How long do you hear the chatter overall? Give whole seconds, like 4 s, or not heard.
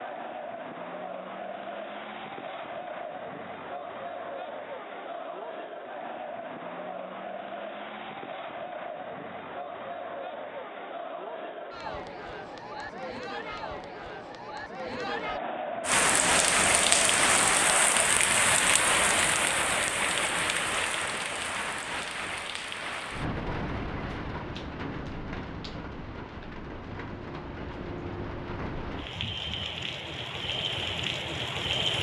18 s.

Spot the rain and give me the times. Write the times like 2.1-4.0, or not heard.
15.8-31.9.